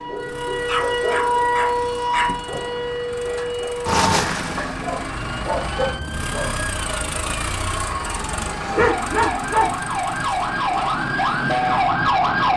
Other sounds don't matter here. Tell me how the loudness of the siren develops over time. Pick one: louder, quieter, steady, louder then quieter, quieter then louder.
quieter then louder.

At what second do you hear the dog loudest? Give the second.
9 s.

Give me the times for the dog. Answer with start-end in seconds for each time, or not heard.
0.7-2.3, 4.8-6.5, 8.8-9.8.